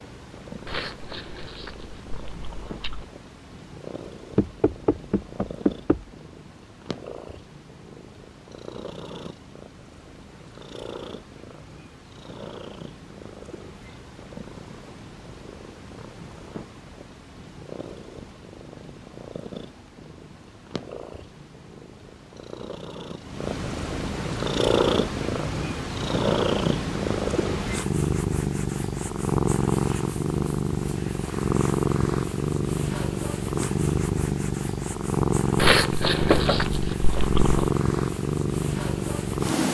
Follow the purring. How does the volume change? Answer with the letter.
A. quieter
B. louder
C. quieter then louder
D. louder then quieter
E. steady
B.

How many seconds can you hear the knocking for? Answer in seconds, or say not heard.
2 s.